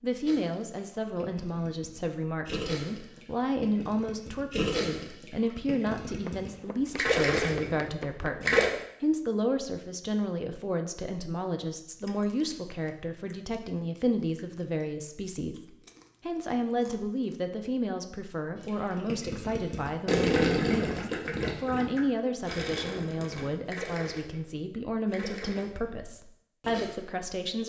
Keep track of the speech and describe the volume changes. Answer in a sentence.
The loudness of the speech stays about the same.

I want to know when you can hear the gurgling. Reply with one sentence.
The gurgling can be heard from 0.2 to 8.7 s and from 18.6 to 26.9 s.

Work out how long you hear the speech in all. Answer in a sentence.
You can hear the speech for 27 seconds altogether.